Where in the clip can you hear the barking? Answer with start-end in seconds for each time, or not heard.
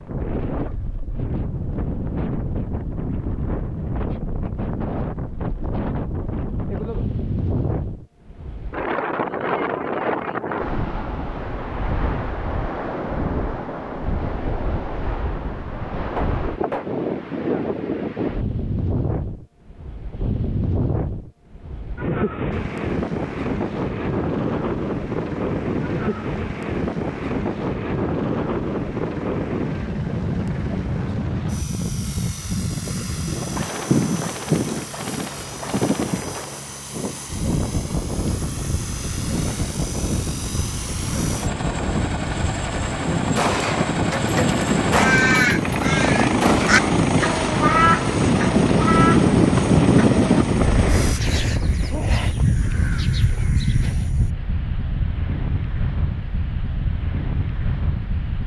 not heard.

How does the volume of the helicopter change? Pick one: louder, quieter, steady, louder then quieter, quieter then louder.
louder.